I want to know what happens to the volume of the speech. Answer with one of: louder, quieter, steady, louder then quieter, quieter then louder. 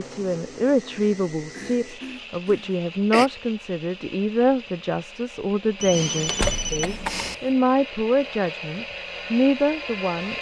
steady.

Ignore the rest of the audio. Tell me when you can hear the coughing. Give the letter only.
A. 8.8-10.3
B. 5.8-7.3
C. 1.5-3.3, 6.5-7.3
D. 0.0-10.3
C.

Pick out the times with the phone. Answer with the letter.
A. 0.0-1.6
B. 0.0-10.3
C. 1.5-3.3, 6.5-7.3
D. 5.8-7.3
D.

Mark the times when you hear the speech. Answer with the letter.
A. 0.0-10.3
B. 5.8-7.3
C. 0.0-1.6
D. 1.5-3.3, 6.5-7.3
A.